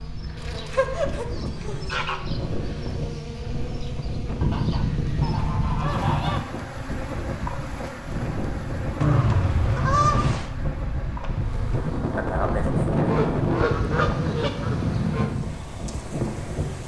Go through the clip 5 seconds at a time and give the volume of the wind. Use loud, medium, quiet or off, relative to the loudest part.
medium, medium, loud, loud.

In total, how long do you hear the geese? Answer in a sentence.
You can hear the geese for 7 seconds altogether.